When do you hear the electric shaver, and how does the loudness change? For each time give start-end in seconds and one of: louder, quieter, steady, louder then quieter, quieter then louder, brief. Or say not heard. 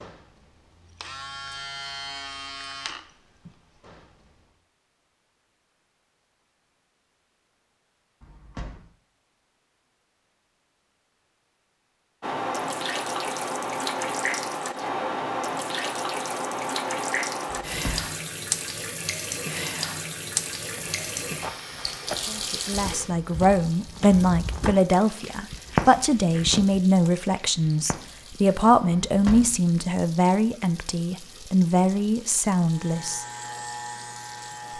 0.0-4.5 louder then quieter
32.6-34.7 brief.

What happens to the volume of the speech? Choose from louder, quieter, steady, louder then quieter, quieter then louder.
steady.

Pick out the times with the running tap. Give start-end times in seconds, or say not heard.
12.2-34.7.